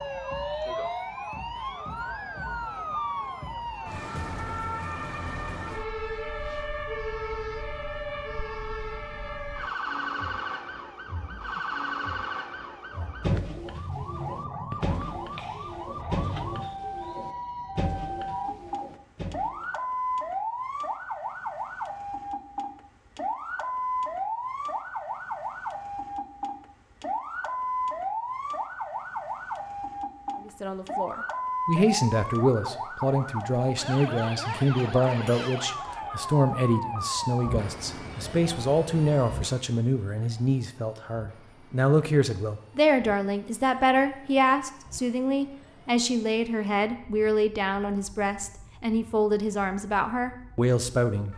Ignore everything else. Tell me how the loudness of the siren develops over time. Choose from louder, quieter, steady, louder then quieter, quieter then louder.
quieter.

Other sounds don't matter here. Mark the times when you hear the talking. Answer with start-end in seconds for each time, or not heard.
30.4-51.3.